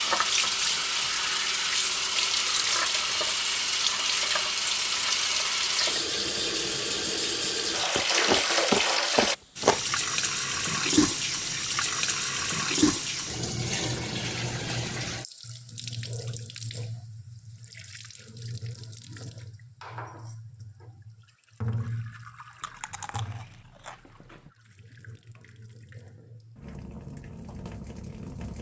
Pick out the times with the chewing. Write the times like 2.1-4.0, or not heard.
8.0-9.8, 22.6-24.5.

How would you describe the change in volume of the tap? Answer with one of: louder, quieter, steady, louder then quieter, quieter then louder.
quieter.